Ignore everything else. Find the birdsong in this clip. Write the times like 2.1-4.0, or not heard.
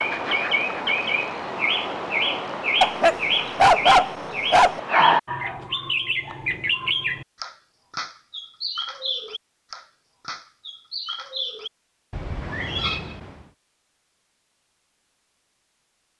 0.0-13.4.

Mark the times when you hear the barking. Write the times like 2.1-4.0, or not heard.
2.8-4.8.